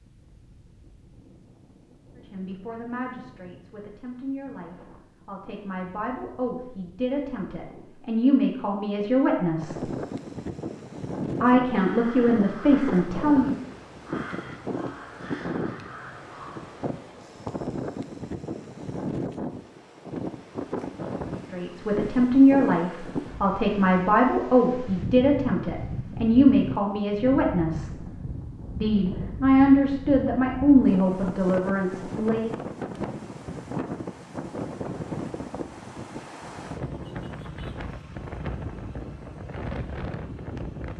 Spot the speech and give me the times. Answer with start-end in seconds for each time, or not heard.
2.1-9.8, 11.4-13.6, 21.5-27.9, 28.8-32.5.